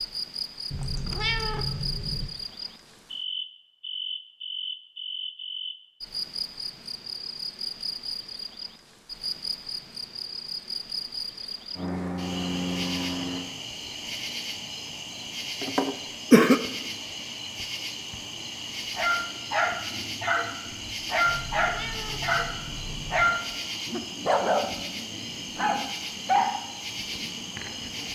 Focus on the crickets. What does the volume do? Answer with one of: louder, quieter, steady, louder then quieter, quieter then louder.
steady.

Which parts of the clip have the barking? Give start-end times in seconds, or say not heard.
18.9-26.6.